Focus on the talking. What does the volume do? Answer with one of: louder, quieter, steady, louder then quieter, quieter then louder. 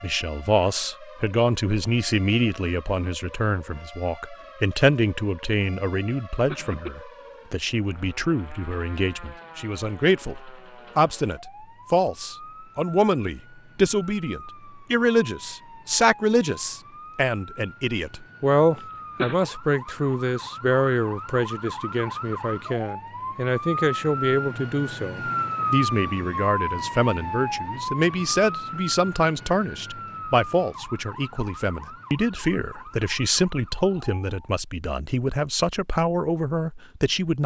steady.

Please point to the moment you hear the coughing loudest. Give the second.
19 s.